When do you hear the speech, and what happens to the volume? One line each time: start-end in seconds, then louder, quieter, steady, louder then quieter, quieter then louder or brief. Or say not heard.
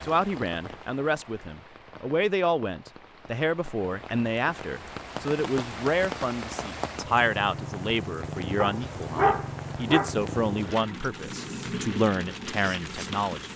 0.0-13.5 steady.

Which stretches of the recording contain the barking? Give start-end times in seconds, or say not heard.
8.6-10.1.